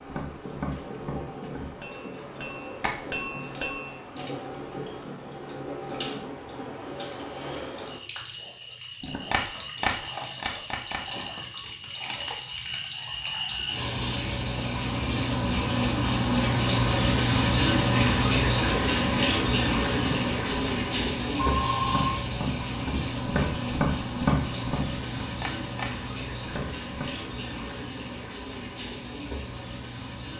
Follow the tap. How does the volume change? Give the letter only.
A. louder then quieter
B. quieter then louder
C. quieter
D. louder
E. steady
A.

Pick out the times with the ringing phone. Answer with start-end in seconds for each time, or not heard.
21.4-22.2.